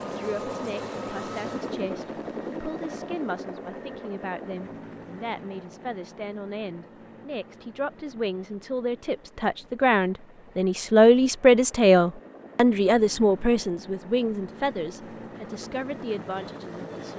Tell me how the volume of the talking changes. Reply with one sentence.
The loudness of the talking goes up, then down.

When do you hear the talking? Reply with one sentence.
The talking can be heard from 0.0 to 17.1 s.